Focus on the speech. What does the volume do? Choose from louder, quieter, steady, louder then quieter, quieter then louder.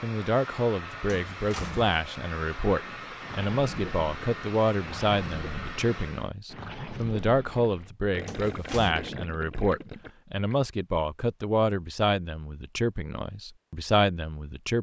steady.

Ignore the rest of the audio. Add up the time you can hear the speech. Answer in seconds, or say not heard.
15 s.